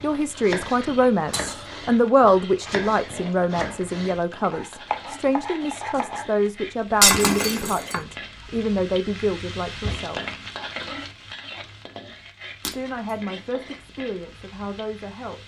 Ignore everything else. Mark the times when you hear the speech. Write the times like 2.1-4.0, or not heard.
0.0-10.2, 12.6-15.4.